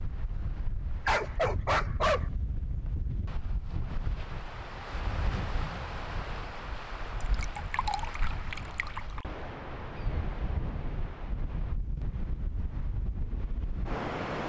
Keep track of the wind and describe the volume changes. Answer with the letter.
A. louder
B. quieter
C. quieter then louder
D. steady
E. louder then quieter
D.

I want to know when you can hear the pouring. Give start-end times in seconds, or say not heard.
7.2-9.2.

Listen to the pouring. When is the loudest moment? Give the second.
8 s.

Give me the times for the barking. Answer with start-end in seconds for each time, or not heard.
1.1-2.3.